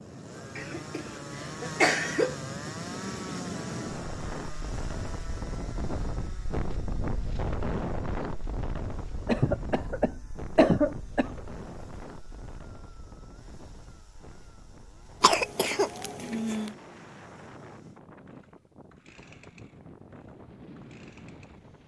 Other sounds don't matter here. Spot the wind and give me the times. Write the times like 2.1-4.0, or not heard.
0.0-21.8.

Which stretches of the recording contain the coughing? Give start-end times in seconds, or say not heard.
0.6-2.4, 9.2-11.4, 15.2-16.7.